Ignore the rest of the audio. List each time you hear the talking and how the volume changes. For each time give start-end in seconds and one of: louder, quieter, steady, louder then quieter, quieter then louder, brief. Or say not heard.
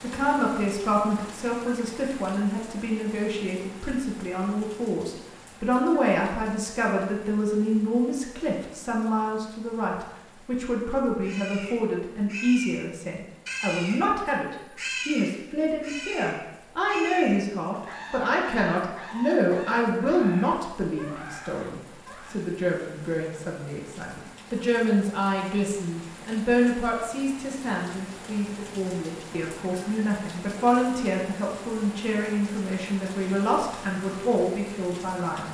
0.0-35.4 steady.